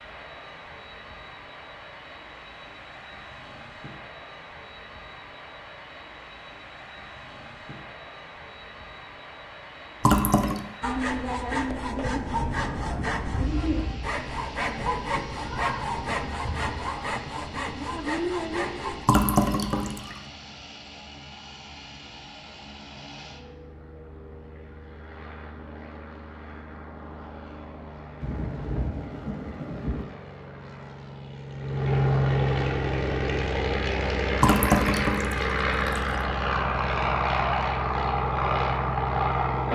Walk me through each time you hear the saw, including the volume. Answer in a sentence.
The saw can be heard from 10.8 to 19.1 s, at a steady volume.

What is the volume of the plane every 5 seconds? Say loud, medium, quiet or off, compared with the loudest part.
quiet, quiet, quiet, quiet, quiet, quiet, loud, loud.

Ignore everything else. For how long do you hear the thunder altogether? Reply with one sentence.
The thunder can be heard for 7 seconds in total.